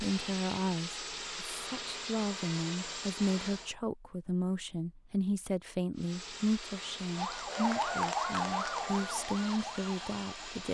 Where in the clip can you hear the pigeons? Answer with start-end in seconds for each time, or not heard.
not heard.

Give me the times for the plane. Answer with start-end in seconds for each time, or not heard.
0.0-3.8, 6.0-10.6.